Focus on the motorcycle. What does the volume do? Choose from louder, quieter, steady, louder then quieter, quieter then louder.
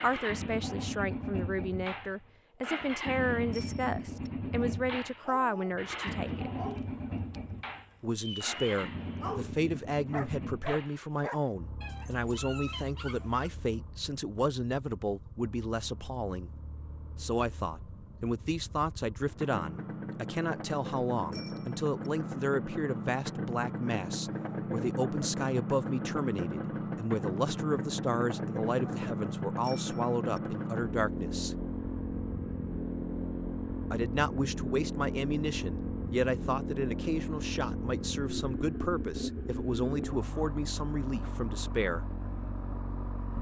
quieter then louder.